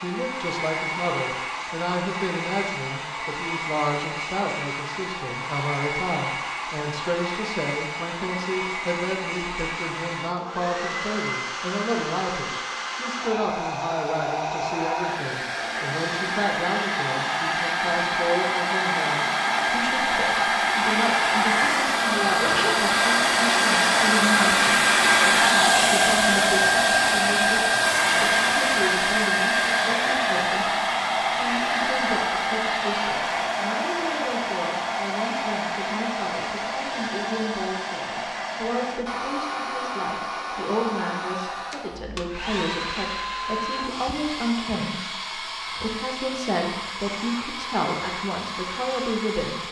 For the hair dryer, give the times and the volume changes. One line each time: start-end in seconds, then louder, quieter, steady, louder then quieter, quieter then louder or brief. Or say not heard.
0.0-49.6 louder then quieter.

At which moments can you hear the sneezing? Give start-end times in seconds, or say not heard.
22.4-22.8.